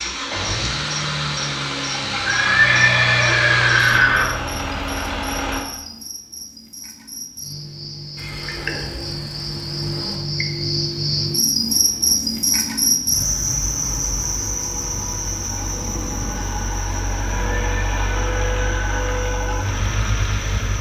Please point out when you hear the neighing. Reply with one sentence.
The neighing can be heard from 2.2 to 4.2 s, from 8.2 to 10.2 s and from 17.4 to 19.2 s.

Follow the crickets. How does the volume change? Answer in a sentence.
The volume of the crickets goes up, then down.